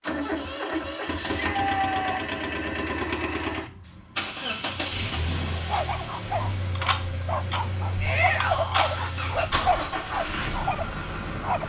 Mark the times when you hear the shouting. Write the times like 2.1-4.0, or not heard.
1.2-2.2, 8.0-8.8.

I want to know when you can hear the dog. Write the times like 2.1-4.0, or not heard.
5.5-11.6.